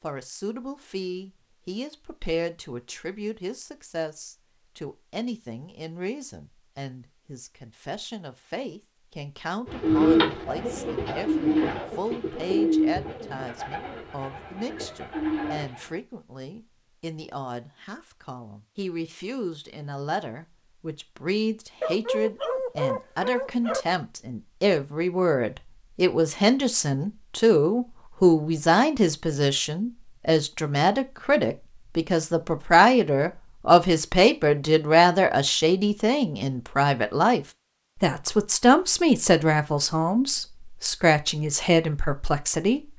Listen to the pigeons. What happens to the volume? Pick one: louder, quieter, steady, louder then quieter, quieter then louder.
quieter then louder.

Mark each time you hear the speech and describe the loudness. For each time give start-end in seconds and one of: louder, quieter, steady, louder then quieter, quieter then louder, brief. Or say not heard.
0.0-42.9 louder.